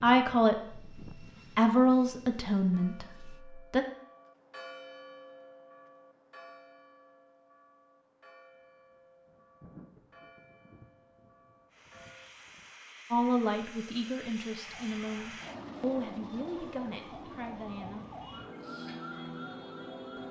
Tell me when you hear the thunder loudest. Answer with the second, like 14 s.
10 s.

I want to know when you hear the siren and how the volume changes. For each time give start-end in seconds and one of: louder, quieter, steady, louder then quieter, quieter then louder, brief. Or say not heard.
14.7-20.2 louder.